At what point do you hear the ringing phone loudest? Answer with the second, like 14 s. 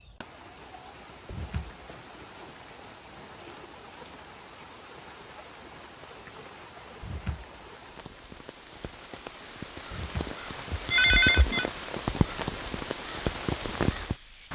11 s.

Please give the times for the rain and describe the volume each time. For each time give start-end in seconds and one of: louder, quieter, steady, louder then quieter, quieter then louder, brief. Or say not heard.
0.0-14.4 louder.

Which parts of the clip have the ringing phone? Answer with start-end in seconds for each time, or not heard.
1.3-1.9, 7.0-7.5, 9.9-11.7.